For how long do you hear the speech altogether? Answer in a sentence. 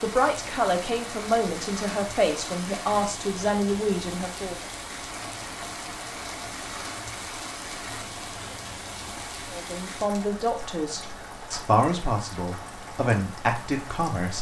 The speech can be heard for 9 seconds in total.